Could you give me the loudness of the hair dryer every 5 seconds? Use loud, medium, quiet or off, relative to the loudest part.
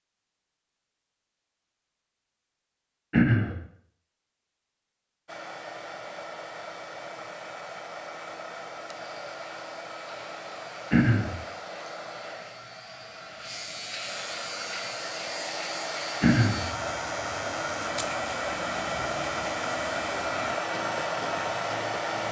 off, medium, medium, loud, loud.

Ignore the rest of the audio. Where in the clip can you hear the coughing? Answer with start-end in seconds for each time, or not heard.
3.1-3.5, 10.9-11.3, 16.2-16.6.